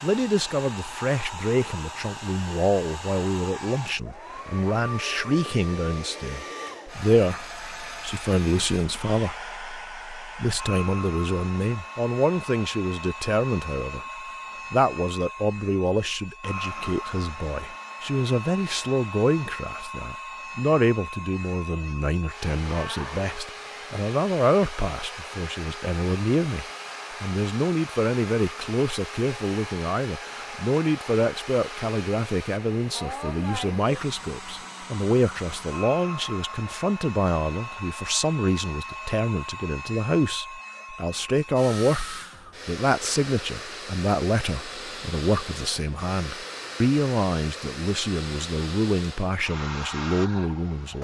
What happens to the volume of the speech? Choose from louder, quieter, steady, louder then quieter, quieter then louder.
steady.